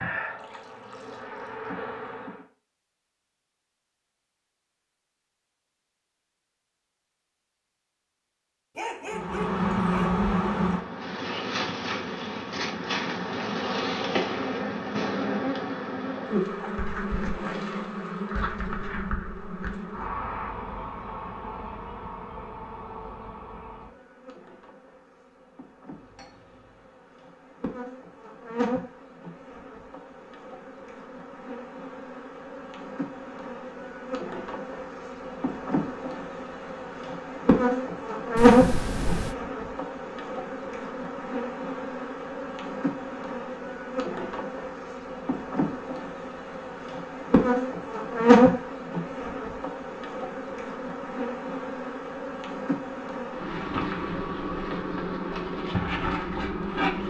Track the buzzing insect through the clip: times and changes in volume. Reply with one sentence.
The buzzing insect can be heard briefly from 0.0 to 2.4 s; and from 9.1 to 57.0 s, getting quieter then louder.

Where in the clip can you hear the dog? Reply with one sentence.
You can hear the dog from 8.8 to 10.2 s.